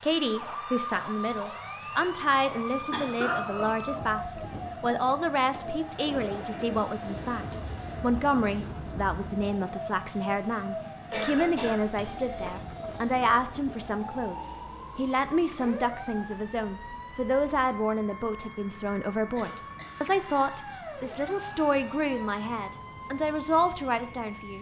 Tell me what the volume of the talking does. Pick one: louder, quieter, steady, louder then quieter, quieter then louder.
steady.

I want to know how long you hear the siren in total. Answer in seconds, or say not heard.
24 s.